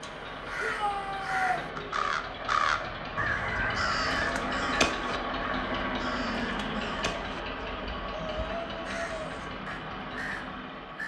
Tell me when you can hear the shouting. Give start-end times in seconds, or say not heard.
0.6-1.6, 8.1-9.2.